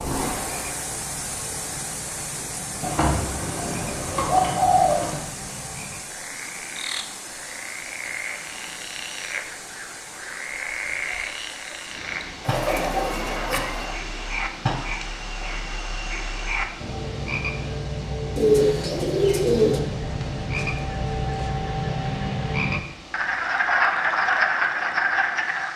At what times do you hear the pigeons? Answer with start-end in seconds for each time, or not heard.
2.8-5.2, 12.4-14.0, 18.4-19.8.